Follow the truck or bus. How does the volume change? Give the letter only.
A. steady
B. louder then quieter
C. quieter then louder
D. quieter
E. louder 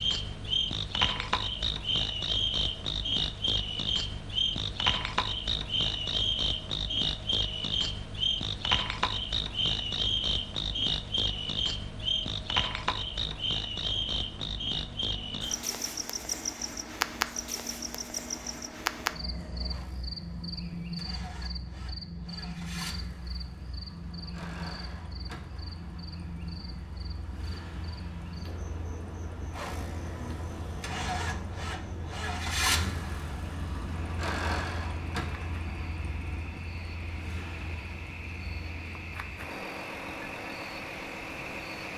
E.